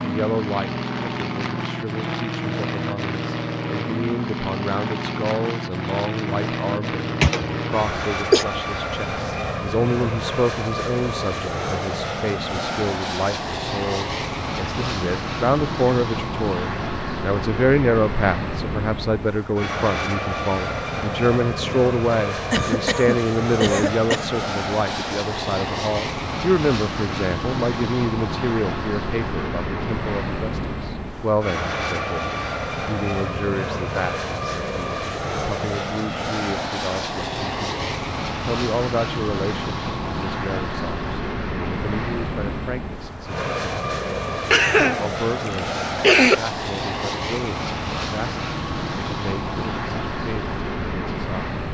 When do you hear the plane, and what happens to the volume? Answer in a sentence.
You can hear the plane from 0.0 to 51.6 s, at a steady volume.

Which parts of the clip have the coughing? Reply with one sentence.
You can hear the coughing from 7.2 to 8.4 s, from 22.5 to 24.3 s and from 44.5 to 46.4 s.